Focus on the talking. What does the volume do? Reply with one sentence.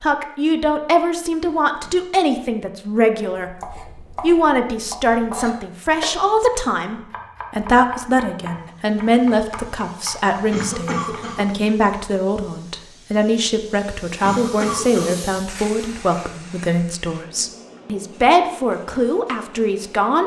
The volume of the talking stays about the same.